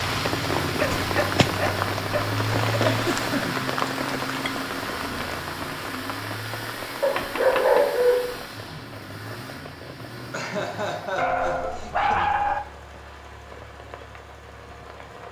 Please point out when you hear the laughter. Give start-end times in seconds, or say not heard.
2.8-3.5, 10.3-12.2.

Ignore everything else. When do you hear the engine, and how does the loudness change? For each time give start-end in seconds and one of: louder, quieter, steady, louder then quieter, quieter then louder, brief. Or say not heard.
0.0-15.2 quieter.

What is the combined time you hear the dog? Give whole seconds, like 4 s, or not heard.
5 s.